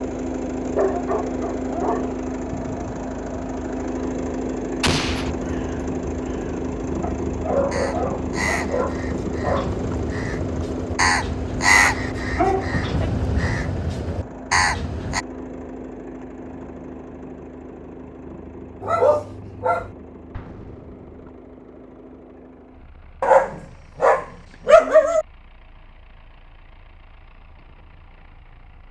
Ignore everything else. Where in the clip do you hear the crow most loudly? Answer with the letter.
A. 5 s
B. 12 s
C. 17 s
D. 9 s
B.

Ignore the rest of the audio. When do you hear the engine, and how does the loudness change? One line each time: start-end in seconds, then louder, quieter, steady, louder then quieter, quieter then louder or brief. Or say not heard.
0.0-28.8 quieter.